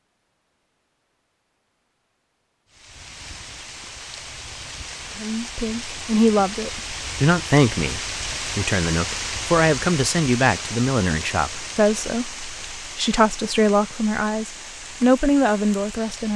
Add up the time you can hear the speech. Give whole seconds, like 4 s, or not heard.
11 s.